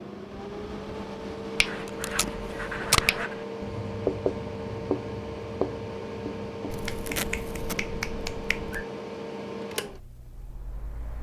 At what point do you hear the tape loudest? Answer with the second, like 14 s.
3 s.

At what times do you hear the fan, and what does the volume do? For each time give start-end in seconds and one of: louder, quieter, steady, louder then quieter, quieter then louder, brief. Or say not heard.
0.0-11.1 steady.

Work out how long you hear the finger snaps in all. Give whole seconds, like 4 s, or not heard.
4 s.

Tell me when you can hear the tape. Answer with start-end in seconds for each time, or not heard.
1.9-3.2, 6.8-7.8.